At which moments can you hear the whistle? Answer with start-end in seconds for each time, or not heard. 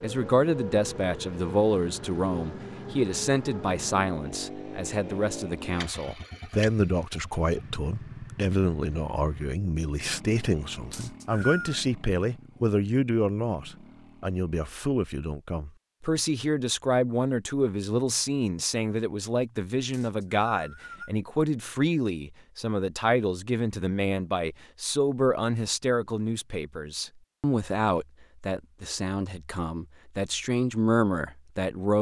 10.9-11.8, 19.9-21.1.